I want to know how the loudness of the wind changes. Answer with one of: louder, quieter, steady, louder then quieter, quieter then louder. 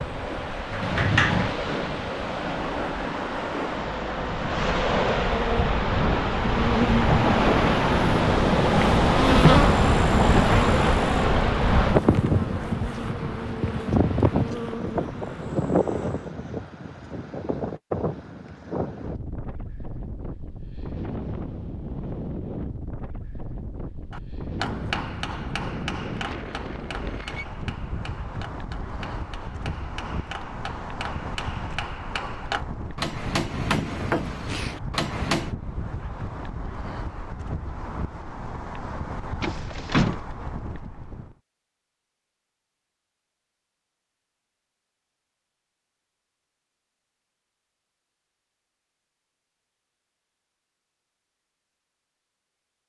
quieter.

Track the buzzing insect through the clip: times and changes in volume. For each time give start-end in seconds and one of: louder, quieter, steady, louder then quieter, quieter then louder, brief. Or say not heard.
0.0-16.4 louder then quieter.